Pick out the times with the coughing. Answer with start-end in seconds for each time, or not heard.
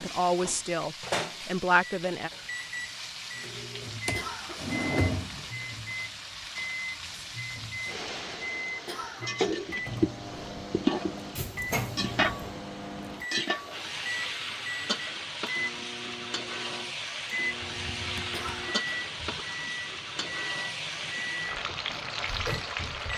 4.1-4.8, 8.8-9.5, 18.3-18.9.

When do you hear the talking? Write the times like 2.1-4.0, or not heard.
0.0-2.3.